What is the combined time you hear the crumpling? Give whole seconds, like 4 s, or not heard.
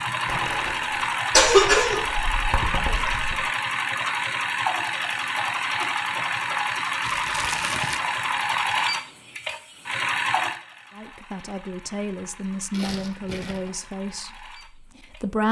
3 s.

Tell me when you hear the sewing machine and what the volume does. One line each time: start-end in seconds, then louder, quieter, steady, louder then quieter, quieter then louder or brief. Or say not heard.
0.0-15.4 quieter.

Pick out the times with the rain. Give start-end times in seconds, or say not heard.
not heard.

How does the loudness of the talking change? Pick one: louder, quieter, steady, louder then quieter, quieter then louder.
quieter.